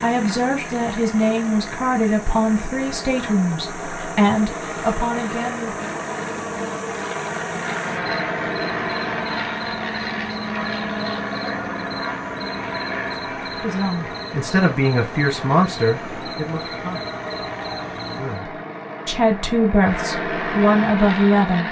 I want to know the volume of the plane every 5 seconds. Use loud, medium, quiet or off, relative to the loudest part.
medium, loud, loud, medium, loud.